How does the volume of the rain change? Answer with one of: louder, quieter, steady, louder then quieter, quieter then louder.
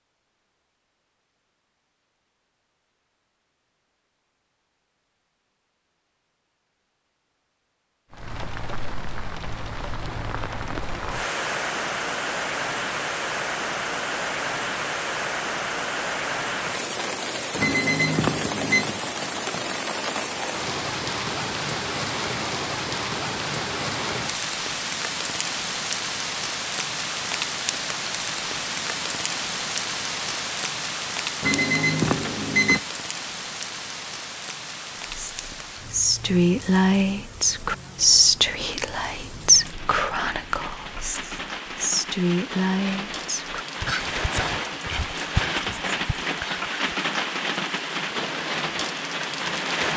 quieter then louder.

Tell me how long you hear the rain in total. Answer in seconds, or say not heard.
42 s.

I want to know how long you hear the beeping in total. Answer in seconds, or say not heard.
3 s.